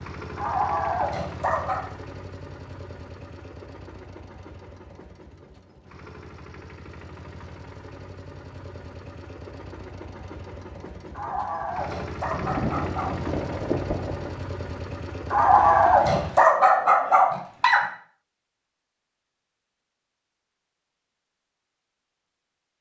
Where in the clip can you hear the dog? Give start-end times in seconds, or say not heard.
0.3-1.9, 11.1-13.2, 15.3-17.8.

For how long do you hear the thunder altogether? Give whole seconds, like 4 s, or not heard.
2 s.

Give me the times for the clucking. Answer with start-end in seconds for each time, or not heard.
not heard.